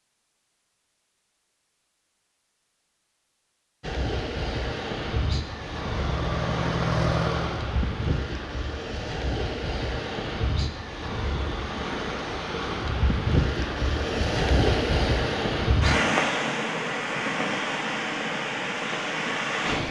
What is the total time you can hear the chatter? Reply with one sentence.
You can't hear the chatter here.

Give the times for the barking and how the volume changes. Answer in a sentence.
You can't hear the barking here.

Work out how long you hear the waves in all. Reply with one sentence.
The waves can be heard for 16 seconds in total.